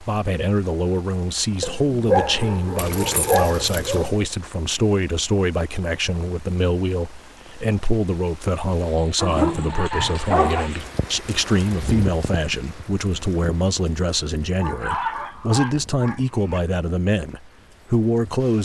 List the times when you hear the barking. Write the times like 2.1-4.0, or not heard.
1.6-4.2, 9.2-10.7, 14.6-16.6.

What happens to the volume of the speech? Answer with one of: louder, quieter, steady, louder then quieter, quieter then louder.
steady.